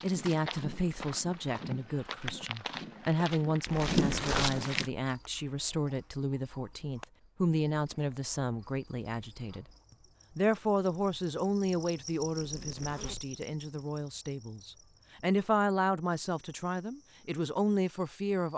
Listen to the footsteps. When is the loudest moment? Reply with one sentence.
The volume of the footsteps peaks at 4 seconds.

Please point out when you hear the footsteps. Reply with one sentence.
The footsteps can be heard from 0.0 to 4.9 s.